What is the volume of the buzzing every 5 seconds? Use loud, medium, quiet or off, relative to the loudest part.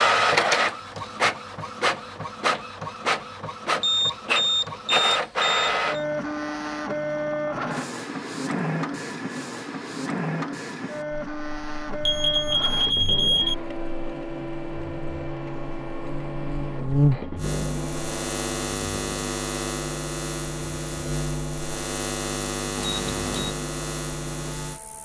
off, off, quiet, loud, loud.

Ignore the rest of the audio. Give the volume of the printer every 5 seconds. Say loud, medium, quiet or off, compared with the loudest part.
loud, loud, medium, medium, quiet.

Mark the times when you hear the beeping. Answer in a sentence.
You can hear the beeping from 3.8 to 6.0 s, from 12.0 to 13.6 s and from 22.8 to 23.6 s.